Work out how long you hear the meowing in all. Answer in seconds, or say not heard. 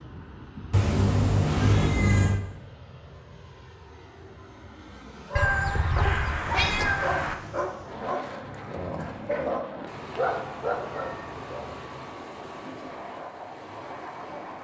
6 s.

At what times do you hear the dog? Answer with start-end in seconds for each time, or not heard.
5.2-11.7.